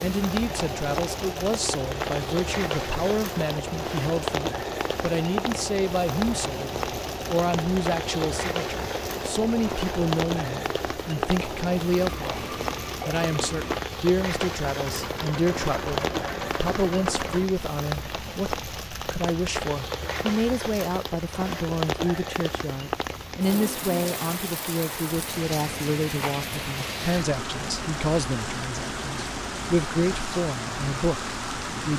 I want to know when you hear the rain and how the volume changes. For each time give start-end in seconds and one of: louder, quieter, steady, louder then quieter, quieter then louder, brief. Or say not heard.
0.0-31.9 steady.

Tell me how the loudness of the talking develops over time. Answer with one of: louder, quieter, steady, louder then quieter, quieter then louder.
steady.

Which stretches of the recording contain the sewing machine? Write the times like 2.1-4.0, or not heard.
0.0-17.5.